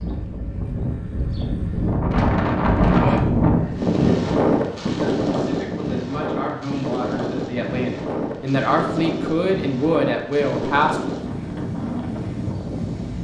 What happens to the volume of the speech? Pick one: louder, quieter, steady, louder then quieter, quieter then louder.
louder.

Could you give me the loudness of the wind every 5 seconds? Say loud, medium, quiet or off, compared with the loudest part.
loud, medium, medium.